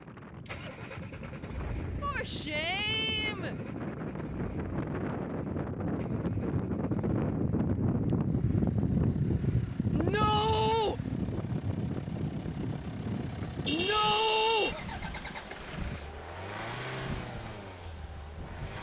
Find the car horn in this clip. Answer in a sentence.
The car horn can be heard from 13.7 to 14.8 s.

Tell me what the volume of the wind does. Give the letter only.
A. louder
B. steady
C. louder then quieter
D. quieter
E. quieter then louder
C.